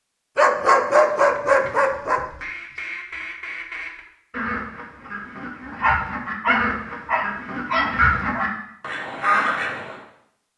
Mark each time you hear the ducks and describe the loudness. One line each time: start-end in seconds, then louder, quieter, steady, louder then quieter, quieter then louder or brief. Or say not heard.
1.4-9.9 louder.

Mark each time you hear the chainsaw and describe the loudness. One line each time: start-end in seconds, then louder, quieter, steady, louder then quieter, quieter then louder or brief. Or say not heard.
not heard.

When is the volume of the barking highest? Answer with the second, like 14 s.
1 s.